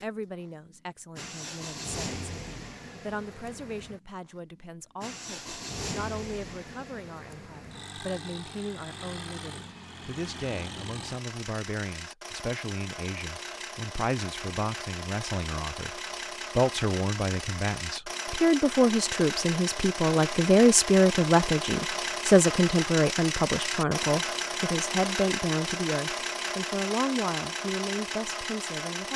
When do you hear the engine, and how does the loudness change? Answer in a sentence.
The engine can be heard from 0.0 to 29.1 s, getting louder.